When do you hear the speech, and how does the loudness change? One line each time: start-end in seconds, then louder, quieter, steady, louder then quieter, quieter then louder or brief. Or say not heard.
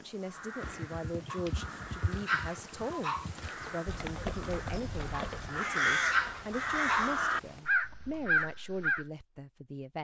0.0-10.0 steady.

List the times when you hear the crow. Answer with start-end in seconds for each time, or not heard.
0.1-9.1.